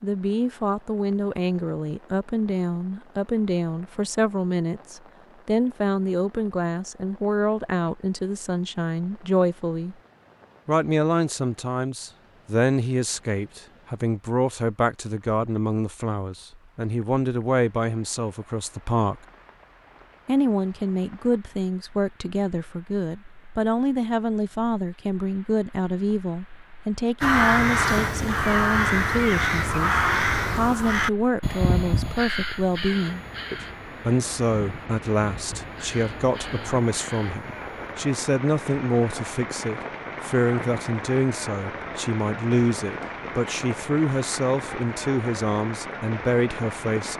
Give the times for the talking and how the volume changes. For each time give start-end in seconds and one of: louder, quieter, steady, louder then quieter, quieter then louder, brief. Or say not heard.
0.0-9.9 steady
10.7-19.1 steady
20.2-47.1 steady.